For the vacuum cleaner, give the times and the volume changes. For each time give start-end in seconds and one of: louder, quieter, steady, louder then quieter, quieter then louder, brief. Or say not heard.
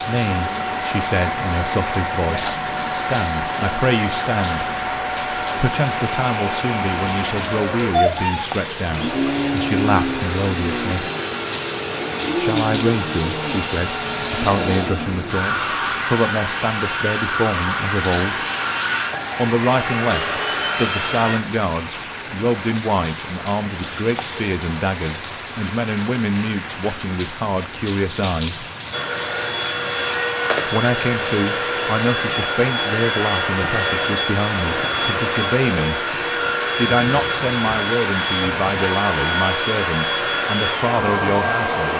0.0-21.4 steady
28.9-41.9 steady.